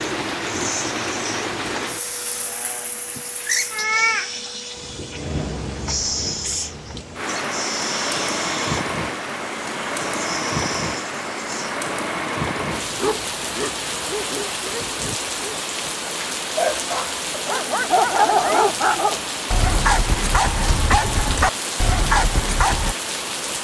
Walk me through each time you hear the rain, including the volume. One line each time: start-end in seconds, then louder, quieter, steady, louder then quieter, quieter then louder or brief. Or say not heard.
0.0-23.5 steady.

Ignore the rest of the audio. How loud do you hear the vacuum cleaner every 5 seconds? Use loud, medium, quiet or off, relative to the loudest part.
loud, loud, loud, off, off.